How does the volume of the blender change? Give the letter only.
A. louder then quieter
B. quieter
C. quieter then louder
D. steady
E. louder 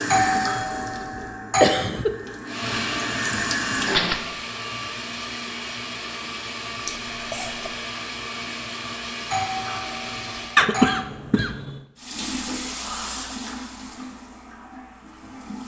D.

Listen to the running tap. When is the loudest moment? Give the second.
4 s.